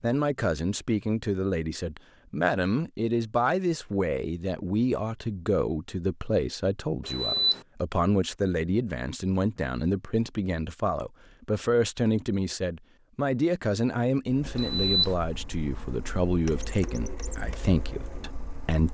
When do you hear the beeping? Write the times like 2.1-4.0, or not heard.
7.0-7.6, 14.6-15.2.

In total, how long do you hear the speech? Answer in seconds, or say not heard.
19 s.